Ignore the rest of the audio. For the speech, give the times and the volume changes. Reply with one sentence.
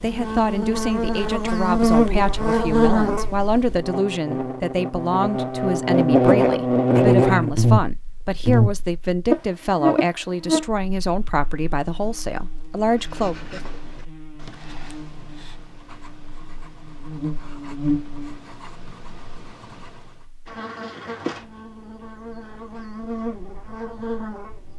You can hear the speech from 0.0 to 13.6 s, at a steady volume.